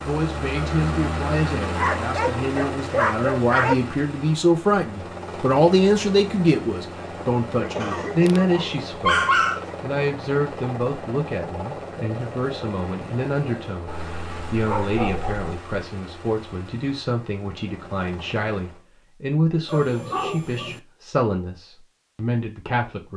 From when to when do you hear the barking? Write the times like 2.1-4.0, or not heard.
1.8-3.8, 7.8-9.8, 13.8-15.6, 19.6-20.8.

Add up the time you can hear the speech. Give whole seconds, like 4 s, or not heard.
23 s.